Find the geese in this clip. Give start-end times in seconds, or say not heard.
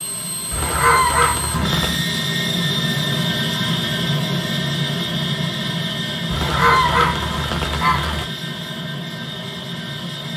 0.5-2.0, 6.3-8.2.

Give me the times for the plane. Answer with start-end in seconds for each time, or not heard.
0.0-10.3.